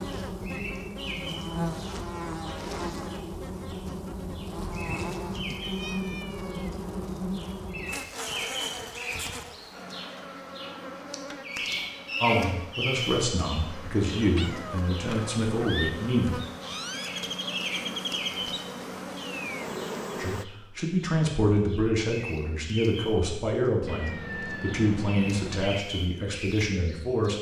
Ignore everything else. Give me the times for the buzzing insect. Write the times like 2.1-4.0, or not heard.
0.0-20.4.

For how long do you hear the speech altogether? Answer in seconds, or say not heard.
11 s.